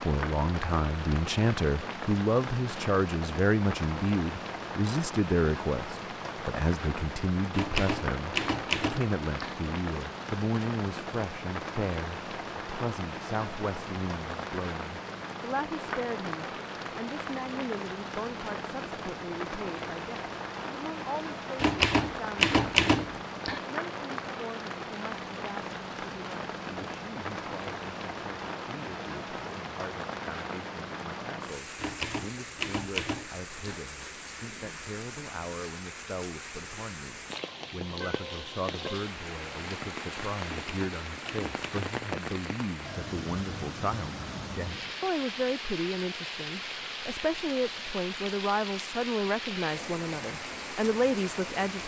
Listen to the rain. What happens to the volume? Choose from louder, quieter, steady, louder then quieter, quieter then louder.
steady.